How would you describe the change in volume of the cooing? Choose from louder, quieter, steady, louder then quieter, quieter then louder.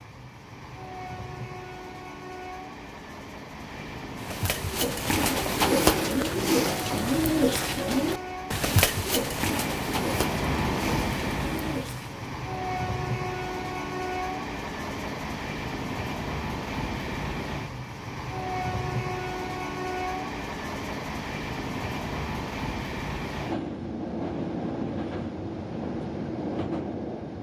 quieter.